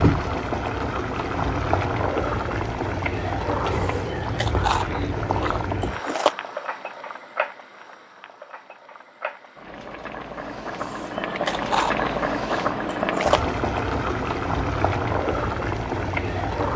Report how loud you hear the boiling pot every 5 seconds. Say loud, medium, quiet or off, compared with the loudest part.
loud, medium, loud, loud.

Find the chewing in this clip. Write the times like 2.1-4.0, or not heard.
3.7-6.3, 10.8-13.4.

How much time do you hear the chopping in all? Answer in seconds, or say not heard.
not heard.